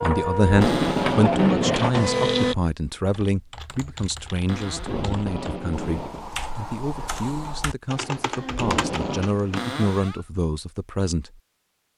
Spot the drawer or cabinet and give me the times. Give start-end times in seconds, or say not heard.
0.6-1.2, 4.5-5.2, 9.6-10.2.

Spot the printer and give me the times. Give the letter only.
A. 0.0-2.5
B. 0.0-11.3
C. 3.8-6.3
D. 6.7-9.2
A.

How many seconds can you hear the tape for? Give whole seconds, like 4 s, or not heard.
4 s.